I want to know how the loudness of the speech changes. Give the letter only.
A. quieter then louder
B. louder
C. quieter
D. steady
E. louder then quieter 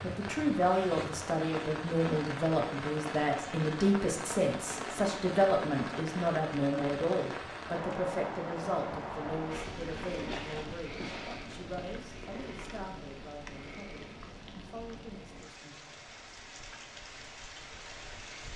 C.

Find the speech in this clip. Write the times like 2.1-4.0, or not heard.
0.0-15.9.